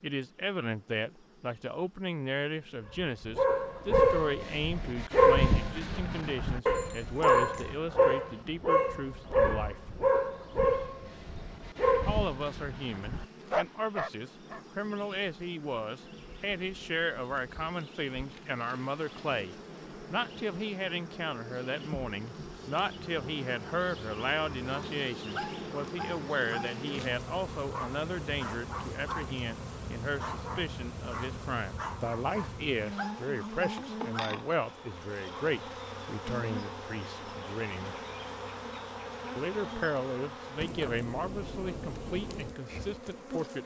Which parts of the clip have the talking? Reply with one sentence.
You can hear the talking from 0.0 to 9.8 s, from 12.1 to 38.0 s and from 39.4 to 43.6 s.